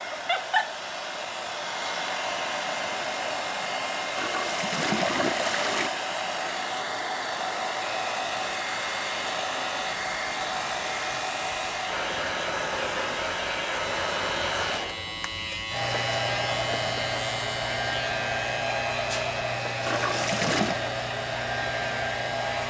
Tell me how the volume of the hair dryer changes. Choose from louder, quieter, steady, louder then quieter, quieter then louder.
steady.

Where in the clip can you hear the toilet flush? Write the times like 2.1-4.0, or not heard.
4.2-6.0, 19.9-20.9.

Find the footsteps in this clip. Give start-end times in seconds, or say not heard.
not heard.